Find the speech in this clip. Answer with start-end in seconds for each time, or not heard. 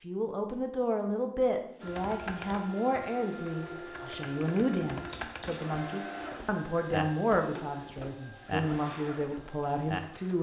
0.0-10.3.